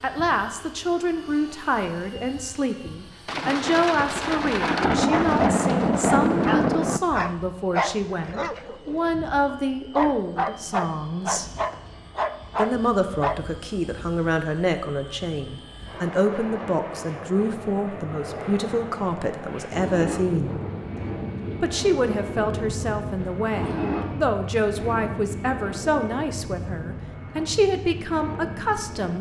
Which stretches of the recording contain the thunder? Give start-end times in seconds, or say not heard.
3.2-7.0, 20.2-23.4.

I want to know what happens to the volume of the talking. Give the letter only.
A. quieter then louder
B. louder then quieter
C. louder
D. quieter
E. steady
E.